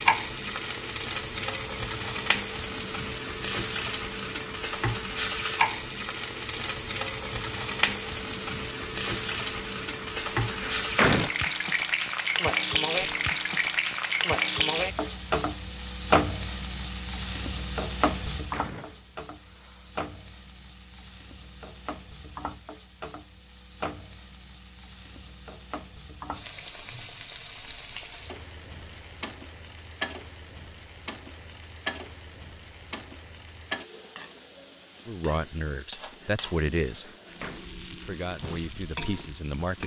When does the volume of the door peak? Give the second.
11 s.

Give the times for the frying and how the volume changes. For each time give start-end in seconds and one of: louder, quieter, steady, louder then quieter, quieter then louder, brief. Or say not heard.
0.0-39.8 quieter.